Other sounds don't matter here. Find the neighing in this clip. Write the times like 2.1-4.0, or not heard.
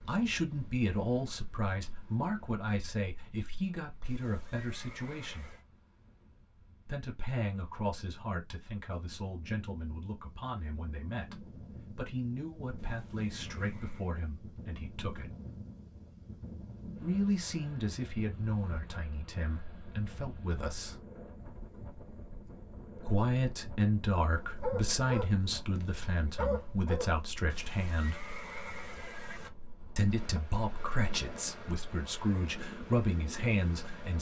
4.0-5.7, 12.8-14.1, 27.5-29.5.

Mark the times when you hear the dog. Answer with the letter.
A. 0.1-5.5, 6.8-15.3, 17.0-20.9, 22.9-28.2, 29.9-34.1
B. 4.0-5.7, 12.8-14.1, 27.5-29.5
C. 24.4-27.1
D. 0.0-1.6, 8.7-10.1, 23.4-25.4
C.